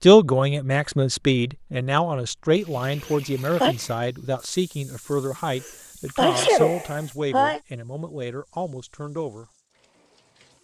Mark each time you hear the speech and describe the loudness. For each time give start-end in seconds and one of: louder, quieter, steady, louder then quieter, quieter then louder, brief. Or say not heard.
0.0-9.4 quieter.